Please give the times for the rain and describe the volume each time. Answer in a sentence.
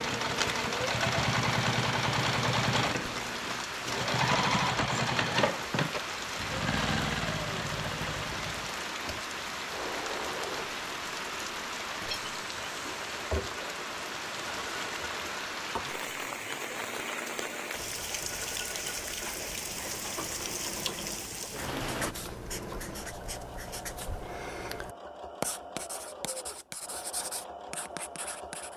The rain can be heard from 0.0 to 22.1 s, at a steady volume.